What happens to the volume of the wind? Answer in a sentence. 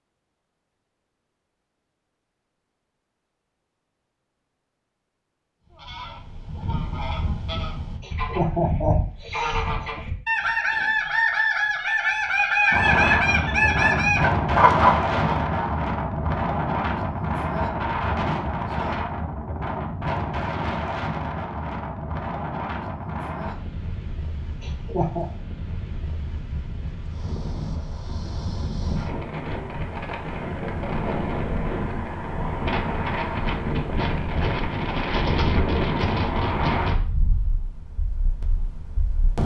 The loudness of the wind goes down, then up.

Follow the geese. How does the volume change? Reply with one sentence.
The loudness of the geese goes up.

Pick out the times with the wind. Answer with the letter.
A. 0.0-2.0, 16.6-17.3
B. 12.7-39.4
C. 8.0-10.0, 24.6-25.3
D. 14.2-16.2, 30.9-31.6
B.